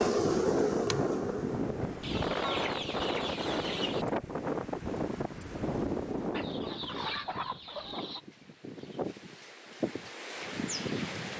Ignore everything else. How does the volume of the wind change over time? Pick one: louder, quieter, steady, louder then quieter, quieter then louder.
quieter then louder.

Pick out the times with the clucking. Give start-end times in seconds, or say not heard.
2.0-4.0, 6.3-8.2.